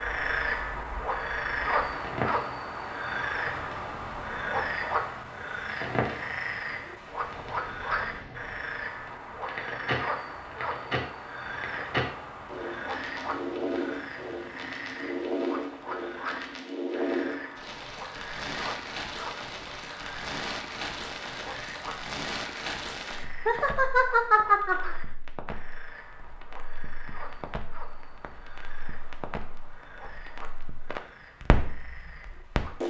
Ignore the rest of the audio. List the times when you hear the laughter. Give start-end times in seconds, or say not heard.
23.4-24.9.